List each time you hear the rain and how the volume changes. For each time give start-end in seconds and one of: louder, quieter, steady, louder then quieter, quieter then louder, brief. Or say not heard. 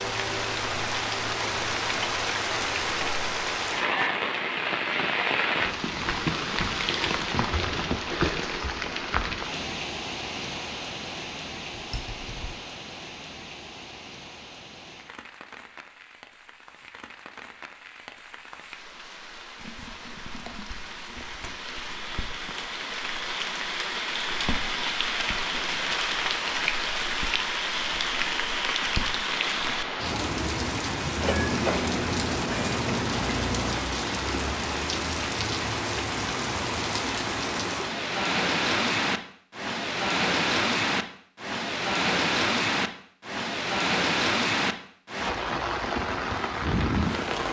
0.0-47.4 quieter then louder.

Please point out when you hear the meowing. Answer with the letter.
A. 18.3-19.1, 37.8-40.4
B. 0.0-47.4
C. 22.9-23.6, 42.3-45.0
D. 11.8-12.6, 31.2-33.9
D.